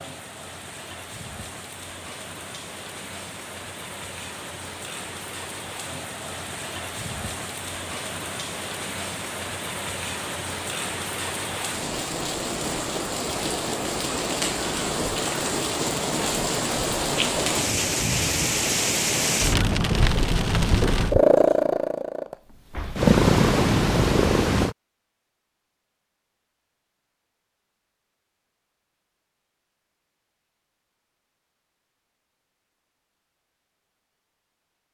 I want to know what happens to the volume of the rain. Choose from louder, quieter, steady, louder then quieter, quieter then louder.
louder.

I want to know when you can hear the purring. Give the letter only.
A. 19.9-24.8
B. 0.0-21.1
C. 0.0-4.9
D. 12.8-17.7
A.